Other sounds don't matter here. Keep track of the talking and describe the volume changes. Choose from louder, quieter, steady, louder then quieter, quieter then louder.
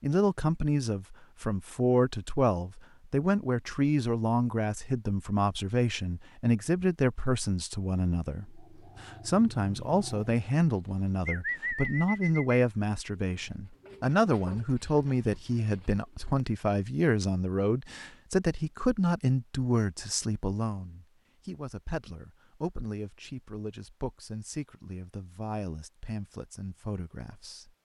quieter.